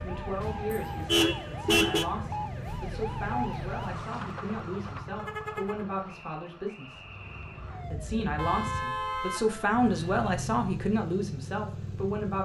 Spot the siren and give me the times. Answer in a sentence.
You can hear the siren from 0.0 to 8.3 s.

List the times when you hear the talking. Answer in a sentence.
You can hear the talking from 0.0 to 7.0 s and from 7.9 to 12.4 s.